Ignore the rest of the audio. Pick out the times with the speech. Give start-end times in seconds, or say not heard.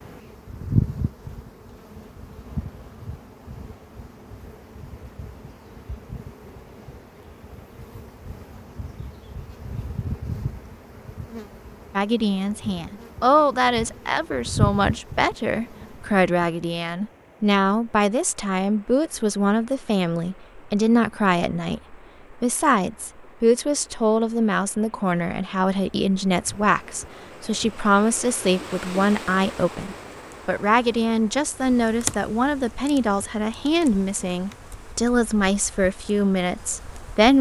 11.9-37.3.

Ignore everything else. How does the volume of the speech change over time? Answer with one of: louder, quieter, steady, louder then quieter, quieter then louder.
steady.